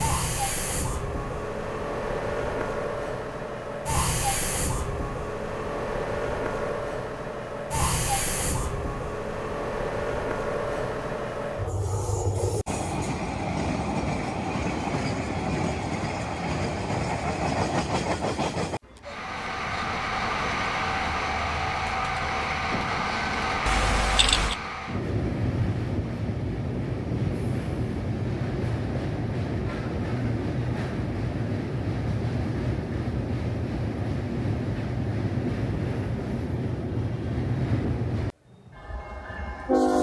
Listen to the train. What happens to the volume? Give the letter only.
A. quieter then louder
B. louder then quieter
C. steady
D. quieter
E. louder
C.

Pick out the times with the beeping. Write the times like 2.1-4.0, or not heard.
23.6-24.6.